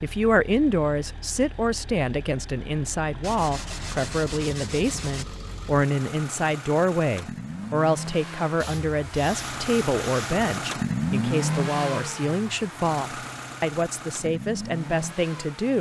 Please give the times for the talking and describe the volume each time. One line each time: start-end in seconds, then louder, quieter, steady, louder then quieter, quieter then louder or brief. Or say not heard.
0.0-15.7 steady.